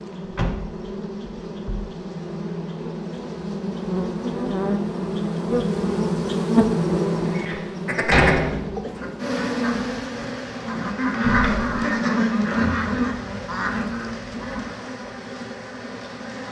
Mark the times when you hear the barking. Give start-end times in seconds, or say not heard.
not heard.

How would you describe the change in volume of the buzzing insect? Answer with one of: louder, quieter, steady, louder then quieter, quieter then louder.
louder then quieter.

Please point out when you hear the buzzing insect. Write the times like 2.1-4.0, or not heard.
0.0-16.4.